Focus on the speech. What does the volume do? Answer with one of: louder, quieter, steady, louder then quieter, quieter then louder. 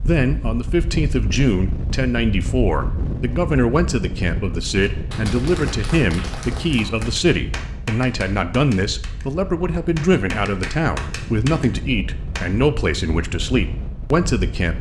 steady.